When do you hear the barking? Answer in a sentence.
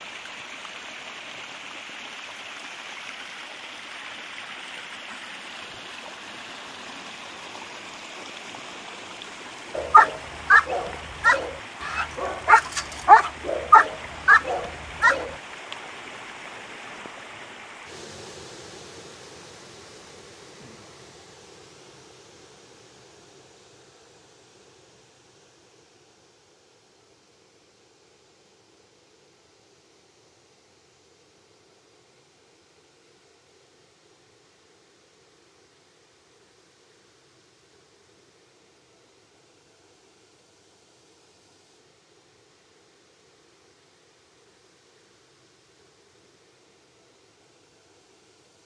You can hear the barking from 9.8 to 15.3 s.